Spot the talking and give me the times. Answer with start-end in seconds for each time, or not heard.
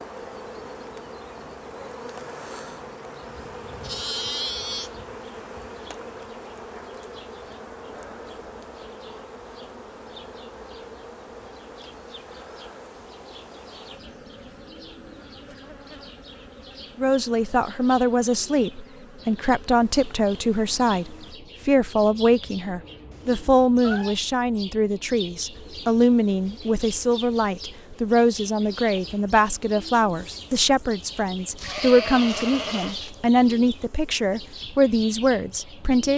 16.9-36.1.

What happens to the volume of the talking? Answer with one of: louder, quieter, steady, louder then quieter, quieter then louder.
steady.